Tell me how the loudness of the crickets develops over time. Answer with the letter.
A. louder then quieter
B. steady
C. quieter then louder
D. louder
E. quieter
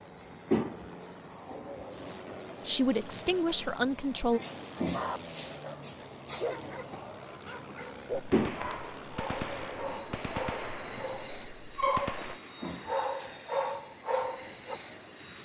E.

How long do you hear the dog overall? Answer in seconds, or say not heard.
10 s.